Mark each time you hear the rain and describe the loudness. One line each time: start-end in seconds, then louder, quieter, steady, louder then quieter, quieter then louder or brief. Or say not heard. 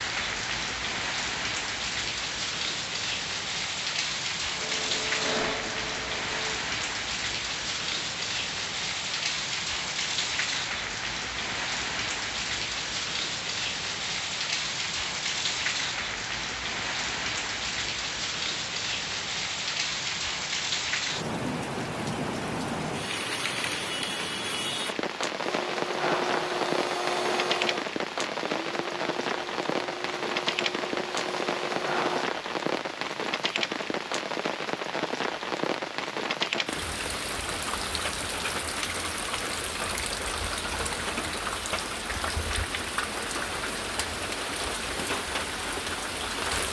0.0-46.6 steady.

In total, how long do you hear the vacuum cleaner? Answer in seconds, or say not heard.
9 s.